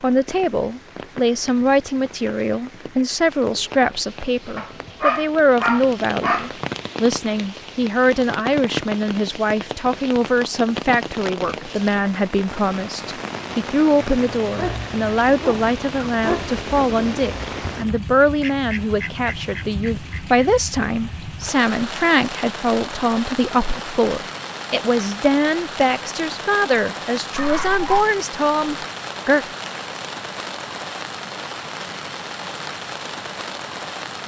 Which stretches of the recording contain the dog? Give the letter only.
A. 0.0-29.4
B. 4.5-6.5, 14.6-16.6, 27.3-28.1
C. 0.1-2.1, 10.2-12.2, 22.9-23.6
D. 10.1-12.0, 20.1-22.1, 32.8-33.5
B.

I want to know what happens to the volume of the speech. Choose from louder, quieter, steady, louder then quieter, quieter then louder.
steady.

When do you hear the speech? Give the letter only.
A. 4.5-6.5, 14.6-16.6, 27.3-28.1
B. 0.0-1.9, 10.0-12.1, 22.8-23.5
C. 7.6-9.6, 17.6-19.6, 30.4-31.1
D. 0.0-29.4
D.